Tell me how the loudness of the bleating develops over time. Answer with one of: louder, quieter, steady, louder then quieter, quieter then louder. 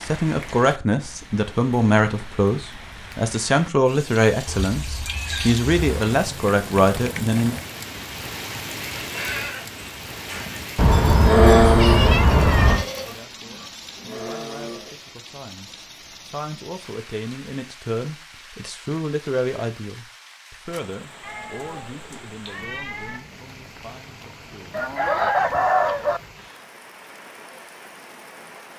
louder then quieter.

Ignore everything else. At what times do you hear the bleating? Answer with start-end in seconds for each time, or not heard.
9.0-14.9.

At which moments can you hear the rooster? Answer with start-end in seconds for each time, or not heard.
24.7-26.2.